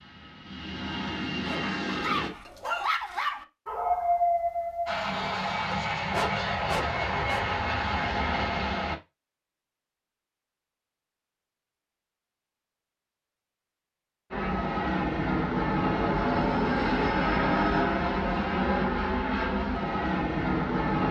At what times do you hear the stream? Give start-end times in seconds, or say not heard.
not heard.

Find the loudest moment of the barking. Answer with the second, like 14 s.
4 s.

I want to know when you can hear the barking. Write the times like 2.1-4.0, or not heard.
1.4-7.5.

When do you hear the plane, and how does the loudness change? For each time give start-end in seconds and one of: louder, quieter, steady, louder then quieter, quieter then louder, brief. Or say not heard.
0.0-2.3 brief
4.8-8.9 steady
14.3-21.0 steady.